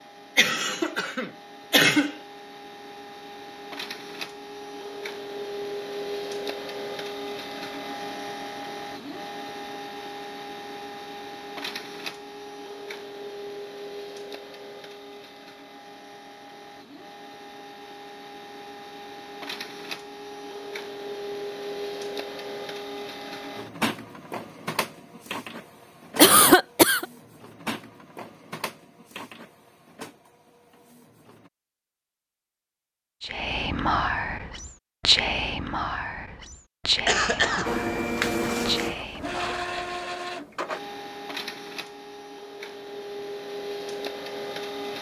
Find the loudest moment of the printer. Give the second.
38 s.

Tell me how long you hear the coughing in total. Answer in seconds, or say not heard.
3 s.